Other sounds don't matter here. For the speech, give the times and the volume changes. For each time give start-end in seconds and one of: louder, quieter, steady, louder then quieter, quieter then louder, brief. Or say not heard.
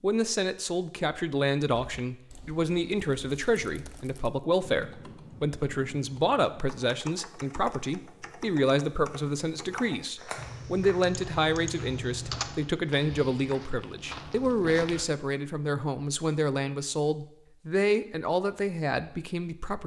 0.0-19.8 steady.